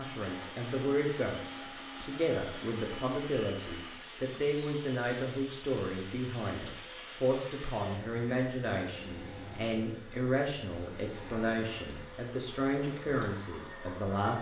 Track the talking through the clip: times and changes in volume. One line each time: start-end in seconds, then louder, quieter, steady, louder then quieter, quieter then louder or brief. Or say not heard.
0.0-14.3 steady.